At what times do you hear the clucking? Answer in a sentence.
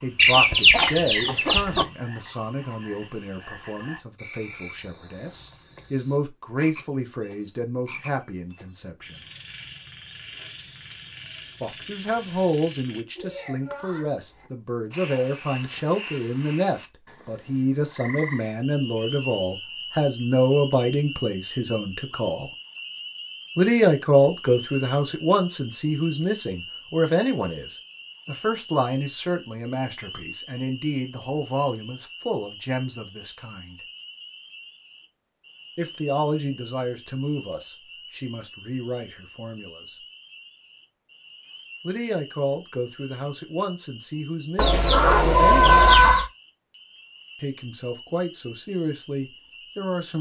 You can hear the clucking from 0.1 to 1.9 s and from 44.5 to 46.3 s.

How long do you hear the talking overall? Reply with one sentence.
The talking can be heard for 41 seconds in total.